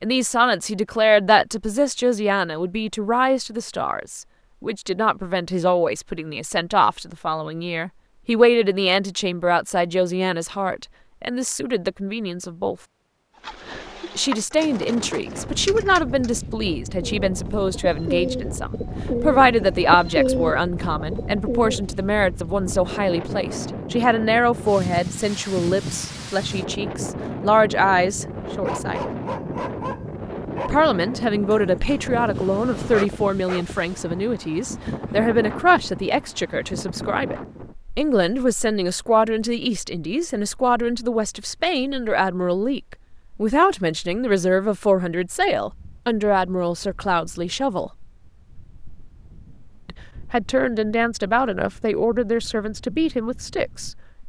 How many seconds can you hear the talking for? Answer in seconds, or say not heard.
48 s.